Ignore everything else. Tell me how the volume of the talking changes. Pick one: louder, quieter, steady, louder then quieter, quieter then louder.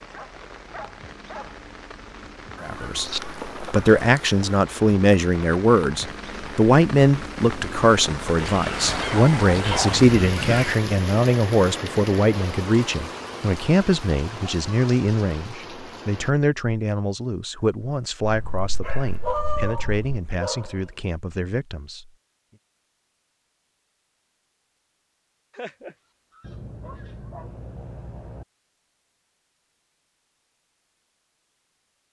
quieter.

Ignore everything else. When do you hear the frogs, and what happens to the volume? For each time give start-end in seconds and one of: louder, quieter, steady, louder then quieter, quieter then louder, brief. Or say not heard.
not heard.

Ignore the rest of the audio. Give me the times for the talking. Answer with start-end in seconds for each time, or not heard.
2.6-22.1.